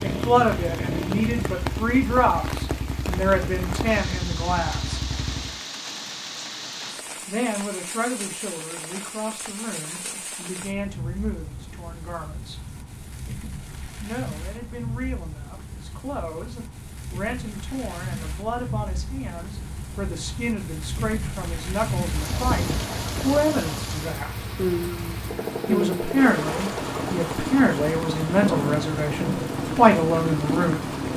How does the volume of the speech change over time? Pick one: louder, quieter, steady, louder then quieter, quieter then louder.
quieter then louder.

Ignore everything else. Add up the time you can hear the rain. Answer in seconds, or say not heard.
31 s.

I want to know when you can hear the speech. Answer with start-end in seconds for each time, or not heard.
0.0-5.0, 7.2-12.7, 14.0-24.4, 25.6-30.9.